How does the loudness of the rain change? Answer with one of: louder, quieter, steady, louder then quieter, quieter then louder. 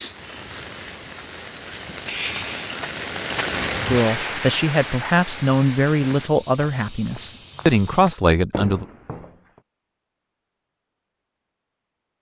louder then quieter.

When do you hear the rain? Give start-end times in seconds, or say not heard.
0.0-6.3.